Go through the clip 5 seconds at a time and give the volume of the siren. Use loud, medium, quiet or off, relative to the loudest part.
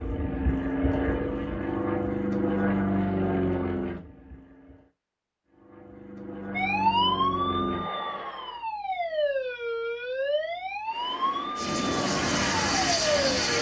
off, loud, loud.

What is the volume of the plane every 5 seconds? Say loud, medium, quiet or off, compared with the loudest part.
loud, medium, loud.